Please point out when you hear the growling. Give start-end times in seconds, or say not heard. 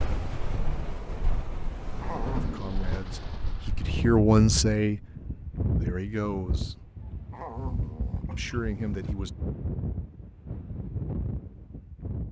2.0-2.8, 7.3-9.2.